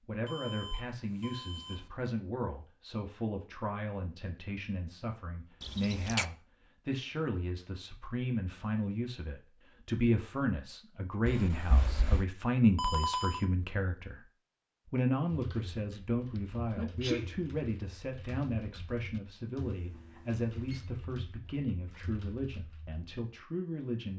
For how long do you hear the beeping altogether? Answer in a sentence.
You can hear the beeping for 5 seconds altogether.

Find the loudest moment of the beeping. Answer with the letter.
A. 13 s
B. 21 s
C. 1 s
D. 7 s
A.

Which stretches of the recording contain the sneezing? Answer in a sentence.
The sneezing can be heard from 5.6 to 6.2 s, from 11.2 to 12.2 s and from 16.4 to 17.3 s.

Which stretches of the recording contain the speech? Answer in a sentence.
The speech can be heard from 0.1 to 14.2 s and from 14.8 to 24.1 s.